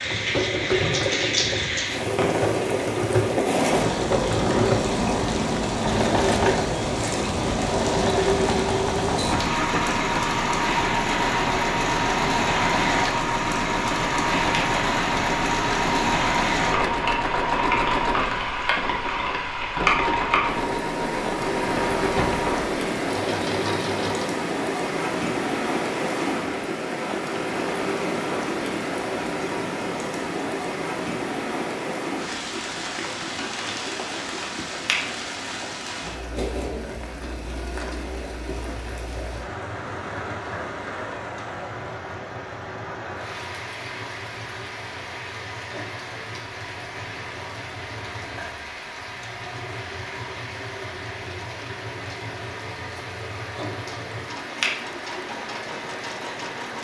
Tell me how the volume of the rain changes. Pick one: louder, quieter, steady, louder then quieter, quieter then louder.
quieter.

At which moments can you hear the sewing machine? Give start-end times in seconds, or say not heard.
0.0-56.7.